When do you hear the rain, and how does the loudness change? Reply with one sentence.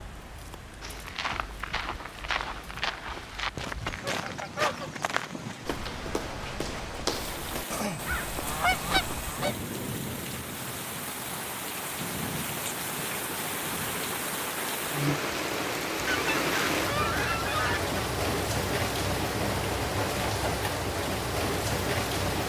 The rain can be heard from 0.0 to 22.4 s, getting louder.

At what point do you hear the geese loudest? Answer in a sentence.
The loudest moment of the geese is at 9 seconds.